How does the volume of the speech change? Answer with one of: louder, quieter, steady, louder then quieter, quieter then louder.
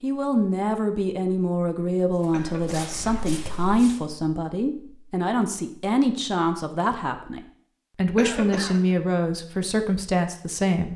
steady.